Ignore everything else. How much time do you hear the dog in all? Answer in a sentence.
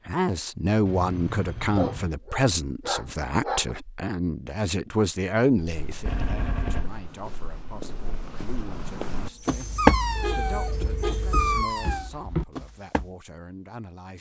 The dog can be heard for 5 seconds in total.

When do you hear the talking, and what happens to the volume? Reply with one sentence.
The talking can be heard from 0.1 to 14.1 s, getting quieter.